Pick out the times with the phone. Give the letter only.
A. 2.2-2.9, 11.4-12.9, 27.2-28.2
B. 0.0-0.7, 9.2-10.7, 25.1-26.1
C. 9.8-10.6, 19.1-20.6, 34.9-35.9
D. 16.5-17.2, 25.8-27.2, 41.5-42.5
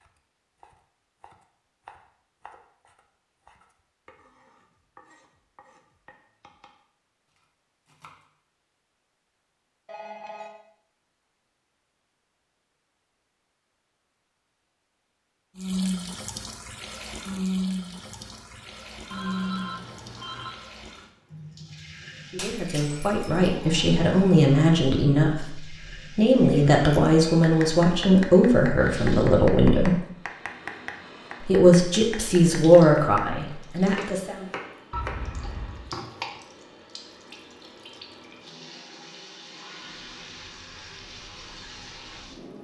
C.